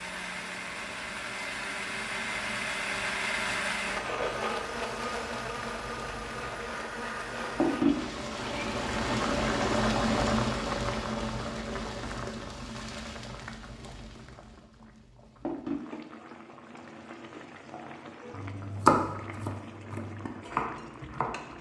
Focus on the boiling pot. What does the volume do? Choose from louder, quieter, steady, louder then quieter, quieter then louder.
louder then quieter.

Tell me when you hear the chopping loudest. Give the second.
19 s.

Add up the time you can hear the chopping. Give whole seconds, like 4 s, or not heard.
4 s.